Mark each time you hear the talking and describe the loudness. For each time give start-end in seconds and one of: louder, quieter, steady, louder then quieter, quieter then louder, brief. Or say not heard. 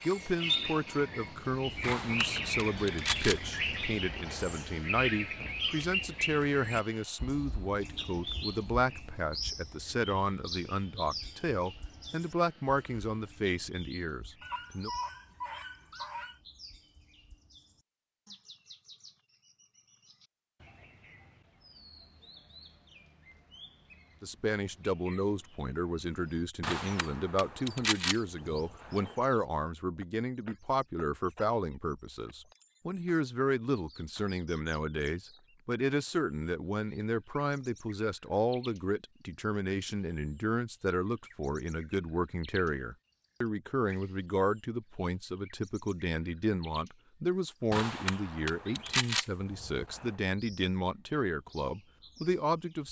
0.0-14.9 steady
24.2-52.8 steady.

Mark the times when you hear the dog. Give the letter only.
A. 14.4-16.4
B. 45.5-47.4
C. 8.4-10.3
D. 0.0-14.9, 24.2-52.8
A.